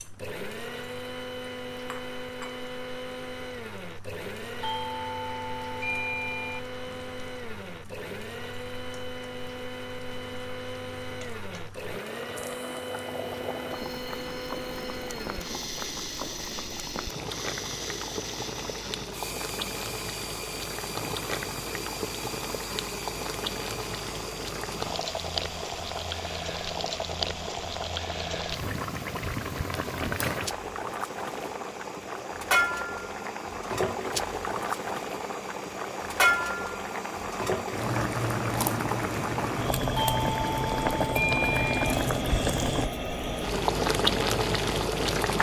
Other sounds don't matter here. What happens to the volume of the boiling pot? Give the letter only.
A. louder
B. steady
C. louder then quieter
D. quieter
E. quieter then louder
A.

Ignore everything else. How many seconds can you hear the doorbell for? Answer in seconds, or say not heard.
4 s.